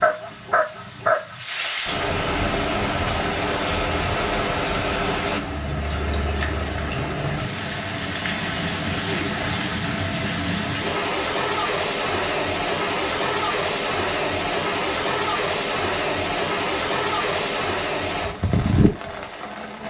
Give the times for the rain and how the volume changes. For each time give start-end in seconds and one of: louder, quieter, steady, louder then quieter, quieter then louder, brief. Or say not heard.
0.0-19.8 steady.